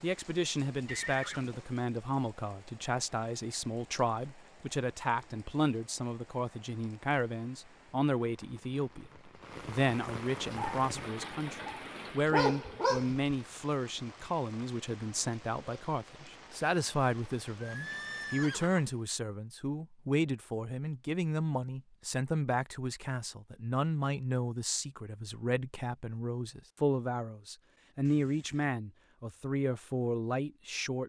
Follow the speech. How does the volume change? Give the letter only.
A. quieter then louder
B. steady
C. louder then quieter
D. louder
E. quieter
B.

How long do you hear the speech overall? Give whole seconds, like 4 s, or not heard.
31 s.